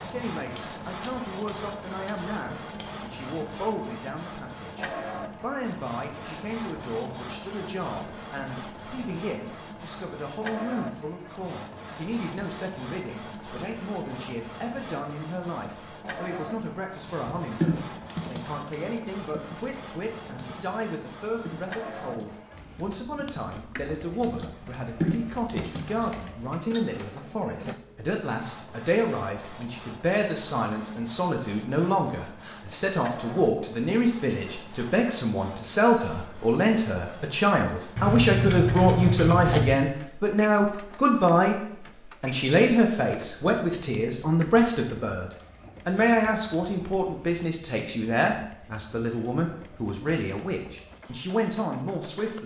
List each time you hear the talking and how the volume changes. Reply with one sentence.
You can hear the talking from 0.0 to 52.4 s, getting louder.